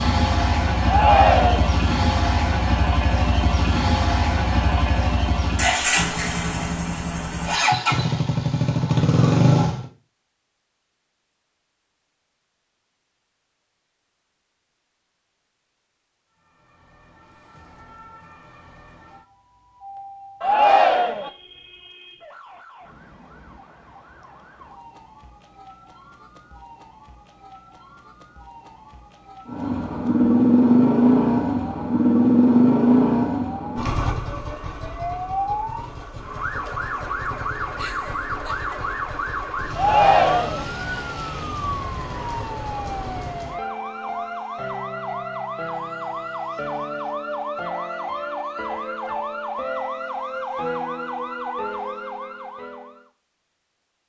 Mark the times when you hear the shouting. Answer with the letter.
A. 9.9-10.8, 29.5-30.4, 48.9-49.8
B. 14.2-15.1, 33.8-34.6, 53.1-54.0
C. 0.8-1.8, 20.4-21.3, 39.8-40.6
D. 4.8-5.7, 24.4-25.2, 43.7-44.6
C.